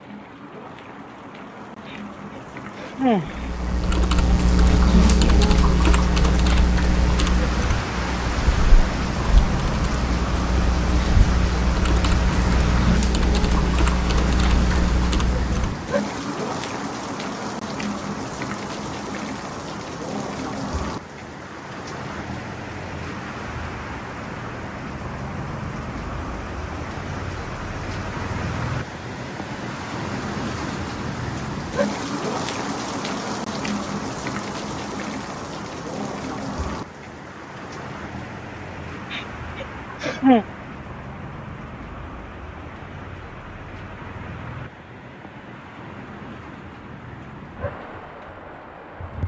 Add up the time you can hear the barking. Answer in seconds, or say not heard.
not heard.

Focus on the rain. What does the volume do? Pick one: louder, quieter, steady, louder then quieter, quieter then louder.
quieter.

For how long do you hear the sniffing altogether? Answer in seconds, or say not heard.
3 s.